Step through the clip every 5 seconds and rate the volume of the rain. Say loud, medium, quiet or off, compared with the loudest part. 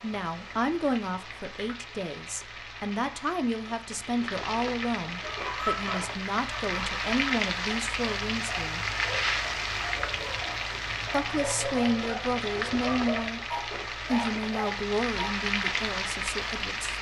medium, loud, loud, loud.